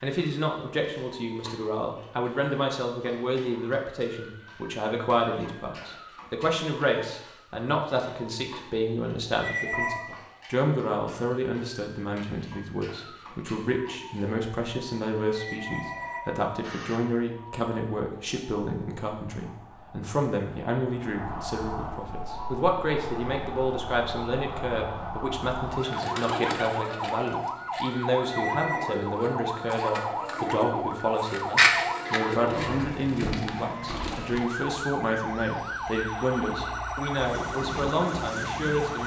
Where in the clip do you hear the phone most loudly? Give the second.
10 s.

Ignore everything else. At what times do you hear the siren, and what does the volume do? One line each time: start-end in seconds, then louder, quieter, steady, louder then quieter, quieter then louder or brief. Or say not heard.
0.1-39.0 louder.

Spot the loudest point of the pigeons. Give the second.
32 s.